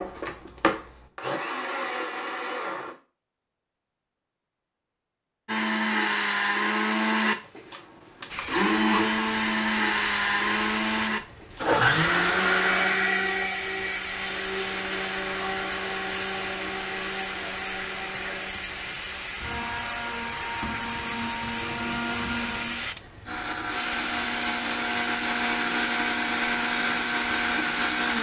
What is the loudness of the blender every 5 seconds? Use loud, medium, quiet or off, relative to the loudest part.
medium, loud, loud, medium, medium, loud.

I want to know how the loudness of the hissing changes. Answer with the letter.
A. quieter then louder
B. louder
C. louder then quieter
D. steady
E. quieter
D.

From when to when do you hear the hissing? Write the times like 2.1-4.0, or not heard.
8.3-27.9.